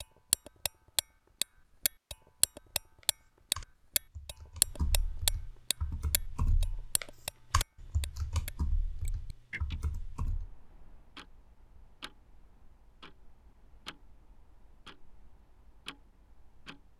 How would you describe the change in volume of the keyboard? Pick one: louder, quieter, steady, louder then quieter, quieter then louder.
louder then quieter.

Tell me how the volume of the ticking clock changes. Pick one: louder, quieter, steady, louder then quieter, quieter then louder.
quieter.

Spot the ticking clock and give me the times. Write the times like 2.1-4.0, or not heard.
0.0-16.9.